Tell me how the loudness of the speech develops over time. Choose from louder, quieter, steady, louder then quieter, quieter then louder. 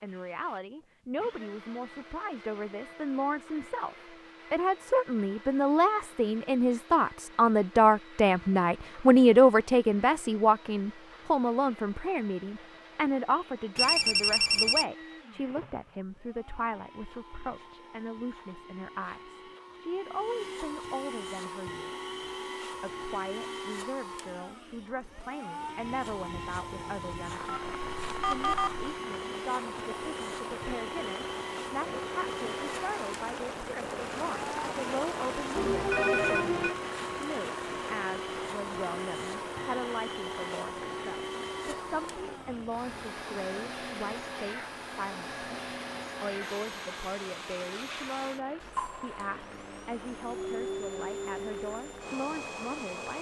quieter.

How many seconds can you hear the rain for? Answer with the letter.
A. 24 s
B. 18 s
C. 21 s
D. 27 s
D.